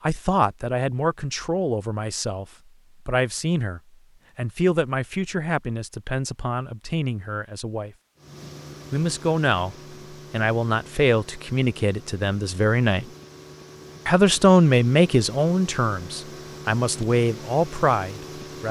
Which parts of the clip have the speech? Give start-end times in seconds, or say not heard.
0.0-2.5, 3.0-7.9, 8.9-13.1, 14.1-18.6.